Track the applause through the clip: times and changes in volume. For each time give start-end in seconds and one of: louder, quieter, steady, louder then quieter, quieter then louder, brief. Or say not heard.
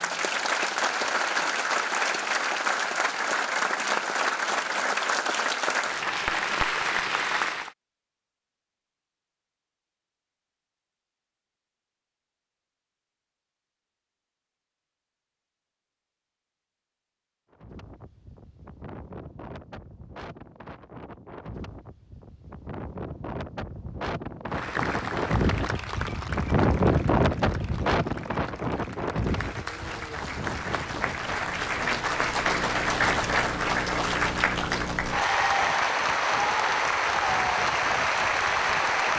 0.0-7.7 steady
24.5-39.1 louder.